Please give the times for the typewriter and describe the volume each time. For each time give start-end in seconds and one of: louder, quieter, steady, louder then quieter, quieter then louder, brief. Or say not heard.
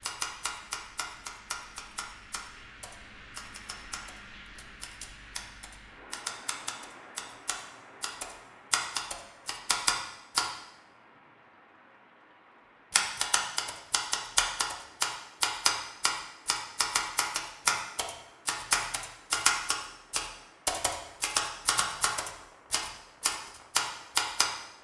0.0-10.5 quieter then louder
12.9-24.5 steady.